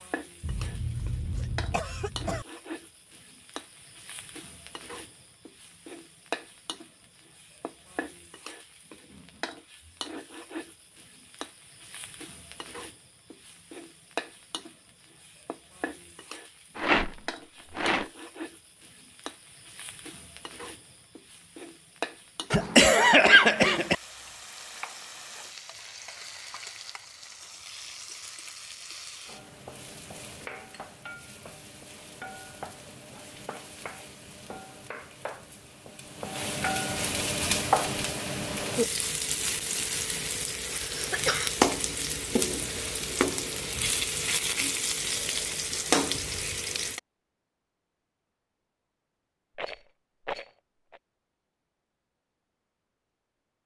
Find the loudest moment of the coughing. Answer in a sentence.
The volume of the coughing peaks at 23 seconds.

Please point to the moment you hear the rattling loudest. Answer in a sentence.
The volume of the rattling peaks at 17 seconds.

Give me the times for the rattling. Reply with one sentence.
You can hear the rattling from 16.8 to 18.1 s and from 49.5 to 51.0 s.